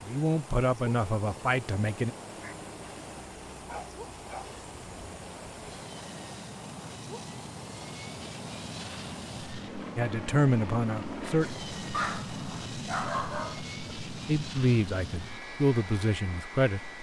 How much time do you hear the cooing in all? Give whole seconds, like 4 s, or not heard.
not heard.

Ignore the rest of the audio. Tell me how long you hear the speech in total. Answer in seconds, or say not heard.
6 s.